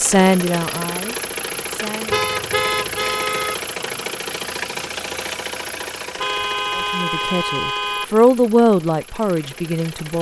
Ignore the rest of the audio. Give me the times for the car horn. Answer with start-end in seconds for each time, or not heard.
2.1-3.5, 6.2-8.1.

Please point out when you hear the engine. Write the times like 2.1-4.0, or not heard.
0.0-10.1.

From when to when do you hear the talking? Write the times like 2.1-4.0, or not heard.
0.0-2.3, 6.8-10.1.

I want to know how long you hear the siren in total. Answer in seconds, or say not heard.
not heard.